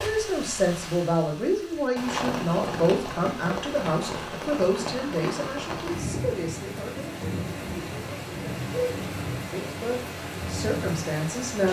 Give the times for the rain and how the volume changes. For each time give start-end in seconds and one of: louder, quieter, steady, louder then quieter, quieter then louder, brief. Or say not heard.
0.0-11.6 steady.